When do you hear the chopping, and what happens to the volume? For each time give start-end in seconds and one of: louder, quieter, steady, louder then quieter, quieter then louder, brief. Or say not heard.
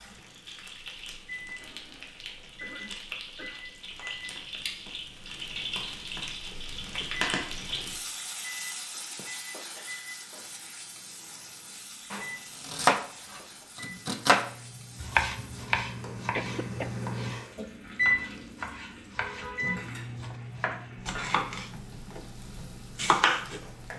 12.1-23.6 quieter then louder.